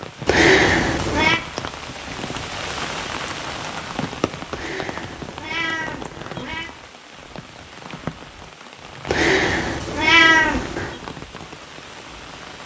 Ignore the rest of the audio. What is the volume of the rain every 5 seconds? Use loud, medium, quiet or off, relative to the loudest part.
loud, medium, medium.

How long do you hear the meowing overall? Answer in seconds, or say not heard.
5 s.